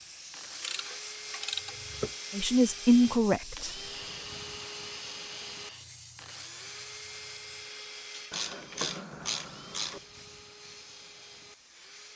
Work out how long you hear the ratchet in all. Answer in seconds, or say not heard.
3 s.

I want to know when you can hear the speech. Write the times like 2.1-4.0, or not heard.
2.3-3.7.